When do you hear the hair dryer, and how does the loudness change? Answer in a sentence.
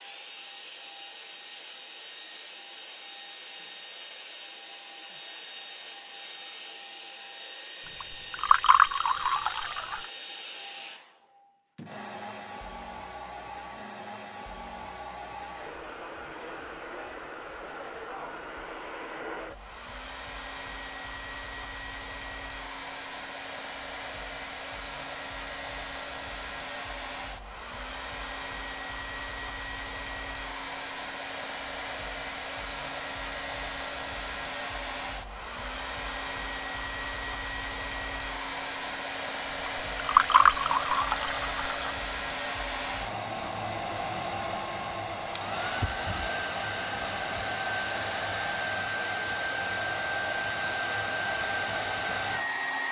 You can hear the hair dryer from 0.0 to 52.8 s, getting louder.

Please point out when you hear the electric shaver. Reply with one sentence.
You can't hear the electric shaver here.